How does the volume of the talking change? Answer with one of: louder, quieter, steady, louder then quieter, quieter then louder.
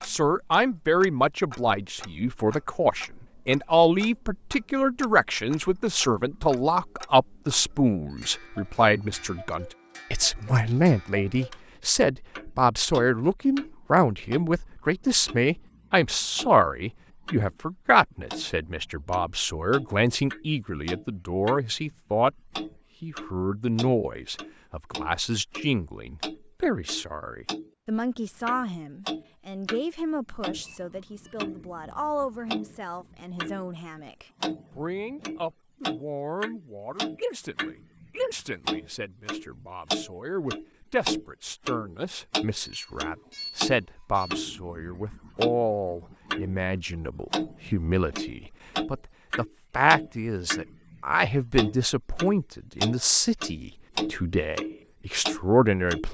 quieter then louder.